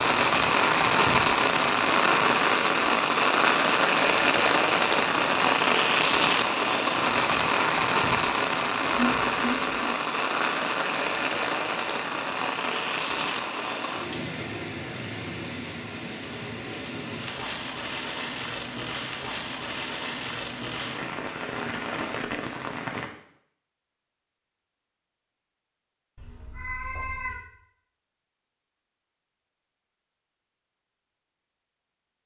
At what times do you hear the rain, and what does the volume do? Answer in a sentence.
The rain can be heard from 0.0 to 23.1 s, getting quieter.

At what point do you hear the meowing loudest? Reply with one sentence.
The loudest moment of the meowing is at 9 seconds.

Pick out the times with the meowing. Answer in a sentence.
The meowing can be heard from 8.8 to 9.8 s and from 26.1 to 27.4 s.